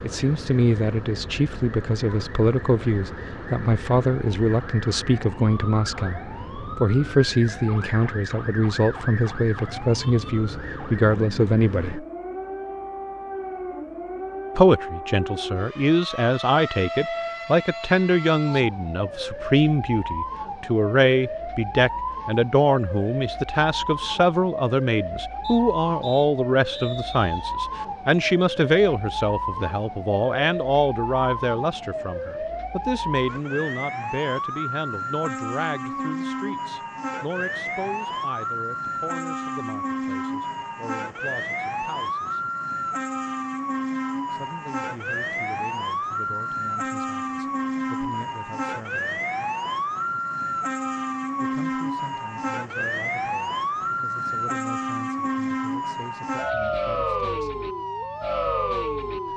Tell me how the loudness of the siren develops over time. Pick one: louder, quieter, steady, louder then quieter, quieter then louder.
louder.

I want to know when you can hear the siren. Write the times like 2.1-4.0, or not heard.
0.0-59.3.